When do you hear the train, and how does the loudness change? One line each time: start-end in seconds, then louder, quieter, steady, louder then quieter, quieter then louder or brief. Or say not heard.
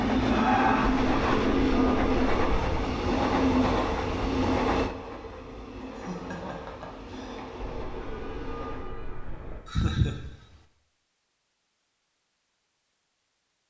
0.0-8.9 quieter.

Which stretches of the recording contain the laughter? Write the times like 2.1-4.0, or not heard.
0.2-1.6, 5.8-7.4, 9.7-10.6.